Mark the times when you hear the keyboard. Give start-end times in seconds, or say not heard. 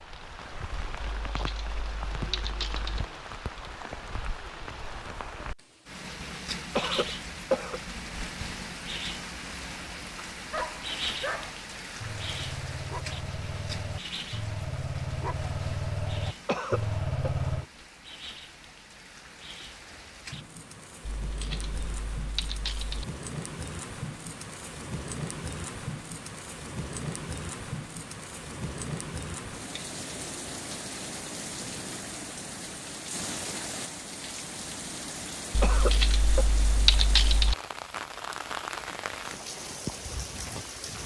1.0-3.0, 21.1-23.1, 35.5-37.5.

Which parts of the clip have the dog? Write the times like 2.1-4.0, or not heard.
10.3-17.6.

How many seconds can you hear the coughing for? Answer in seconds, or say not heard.
3 s.